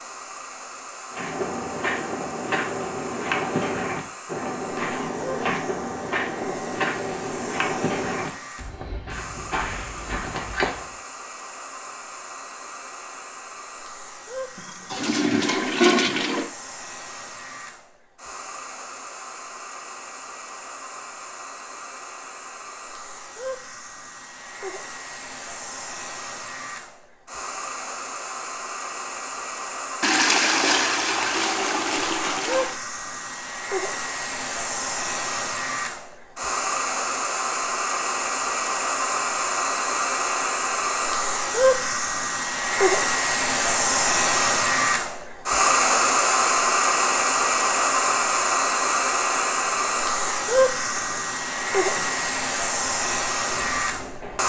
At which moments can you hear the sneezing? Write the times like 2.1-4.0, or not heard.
not heard.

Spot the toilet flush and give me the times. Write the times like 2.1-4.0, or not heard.
14.6-16.5, 30.0-32.8.